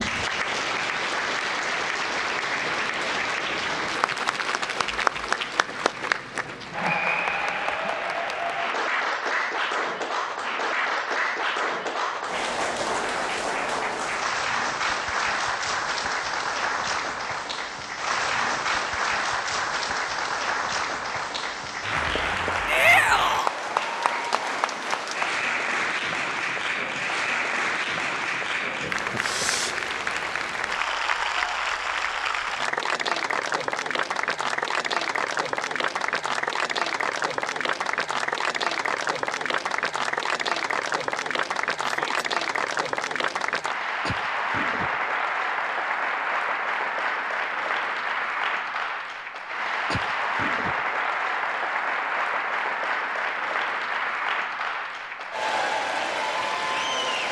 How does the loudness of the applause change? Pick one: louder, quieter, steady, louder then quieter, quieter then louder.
steady.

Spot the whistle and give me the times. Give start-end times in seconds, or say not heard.
not heard.